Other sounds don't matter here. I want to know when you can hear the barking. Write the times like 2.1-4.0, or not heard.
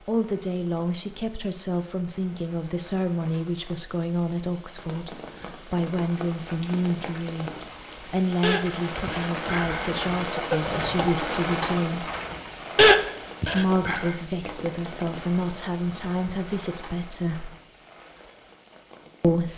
7.7-14.2.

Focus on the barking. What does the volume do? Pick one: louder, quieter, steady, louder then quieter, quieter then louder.
quieter then louder.